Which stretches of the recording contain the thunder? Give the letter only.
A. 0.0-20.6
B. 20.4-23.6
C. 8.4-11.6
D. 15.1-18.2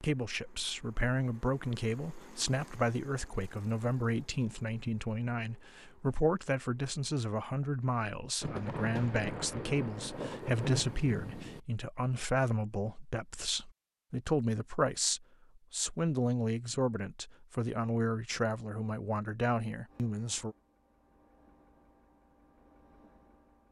C.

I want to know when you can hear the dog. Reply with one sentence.
You can't hear the dog here.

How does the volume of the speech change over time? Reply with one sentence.
The loudness of the speech stays about the same.